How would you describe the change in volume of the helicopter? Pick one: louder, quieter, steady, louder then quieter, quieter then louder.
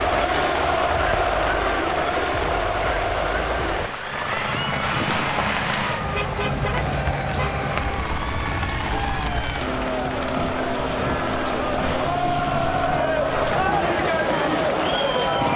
steady.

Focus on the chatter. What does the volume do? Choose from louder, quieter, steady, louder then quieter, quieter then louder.
quieter then louder.